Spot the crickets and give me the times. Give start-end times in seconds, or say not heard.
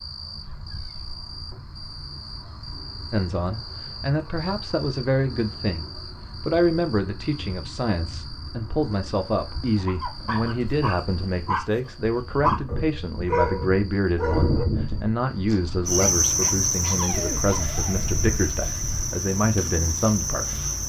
0.0-20.8.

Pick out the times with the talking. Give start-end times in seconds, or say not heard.
3.1-20.8.